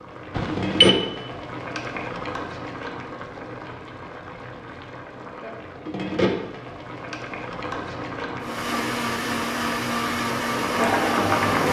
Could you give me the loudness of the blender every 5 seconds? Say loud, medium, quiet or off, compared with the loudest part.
off, loud, loud.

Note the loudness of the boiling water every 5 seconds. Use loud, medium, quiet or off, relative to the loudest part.
medium, medium, loud.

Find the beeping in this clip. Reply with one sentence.
The beeping can be heard from 0.3 to 1.0 s.